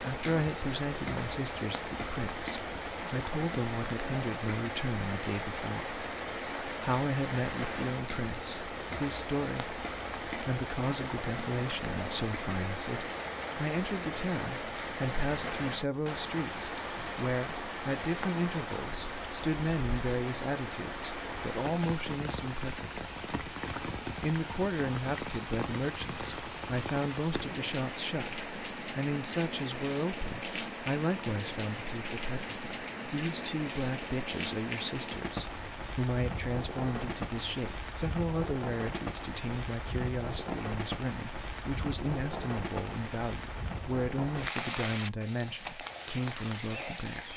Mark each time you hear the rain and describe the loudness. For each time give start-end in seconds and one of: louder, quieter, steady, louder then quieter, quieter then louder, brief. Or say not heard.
0.0-47.3 steady.